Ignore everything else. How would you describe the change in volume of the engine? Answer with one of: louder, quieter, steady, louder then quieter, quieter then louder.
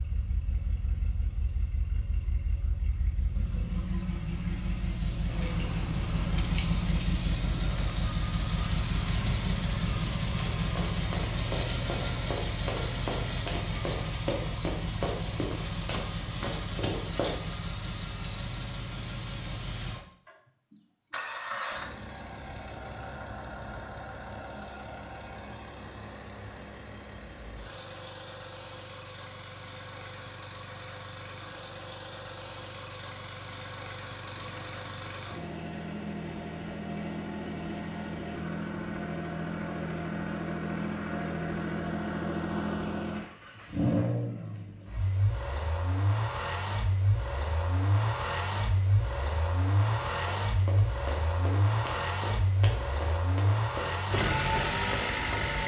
quieter then louder.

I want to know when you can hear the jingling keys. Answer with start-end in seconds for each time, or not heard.
5.3-7.0, 34.2-35.2.